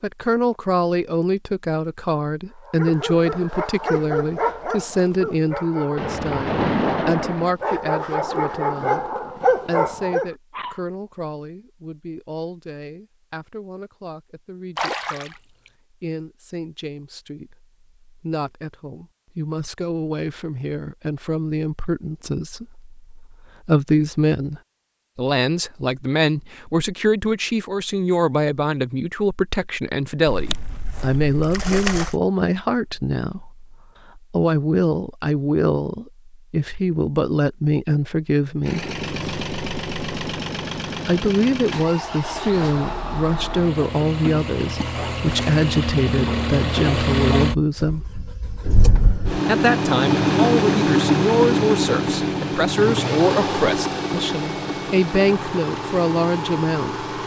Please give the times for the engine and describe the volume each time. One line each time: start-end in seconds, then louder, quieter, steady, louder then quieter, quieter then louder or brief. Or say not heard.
38.6-57.2 louder then quieter.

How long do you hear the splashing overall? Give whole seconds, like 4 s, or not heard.
5 s.